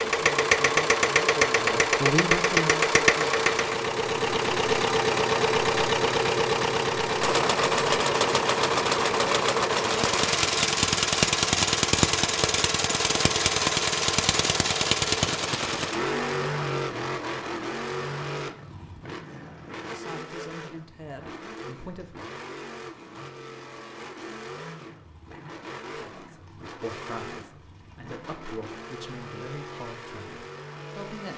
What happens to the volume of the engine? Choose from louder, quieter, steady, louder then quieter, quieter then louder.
quieter.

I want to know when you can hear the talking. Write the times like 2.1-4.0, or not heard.
0.1-3.5, 19.8-22.3, 25.9-31.3.